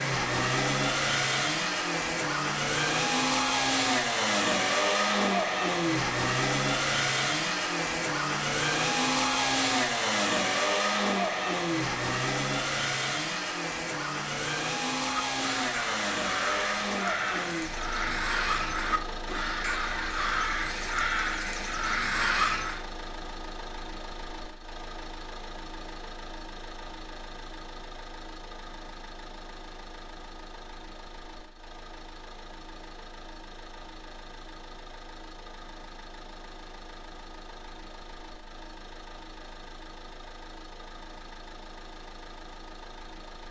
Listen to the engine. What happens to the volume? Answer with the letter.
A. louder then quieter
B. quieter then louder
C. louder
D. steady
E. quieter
E.